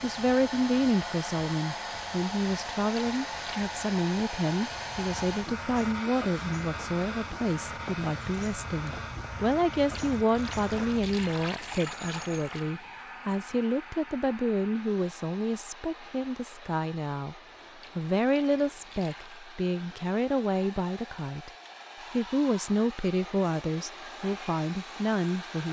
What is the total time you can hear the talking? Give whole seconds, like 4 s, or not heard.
25 s.